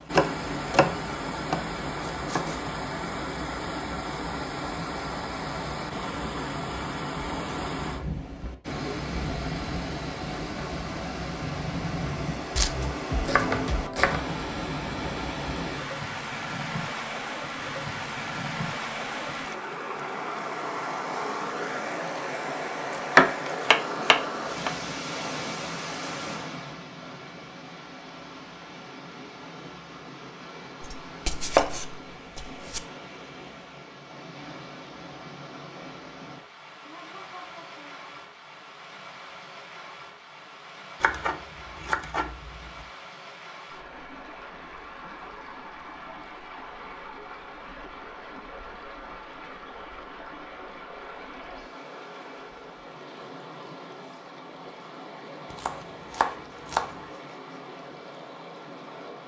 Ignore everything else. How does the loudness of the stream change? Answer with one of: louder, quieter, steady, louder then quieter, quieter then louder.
quieter.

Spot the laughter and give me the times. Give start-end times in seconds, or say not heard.
36.8-38.0.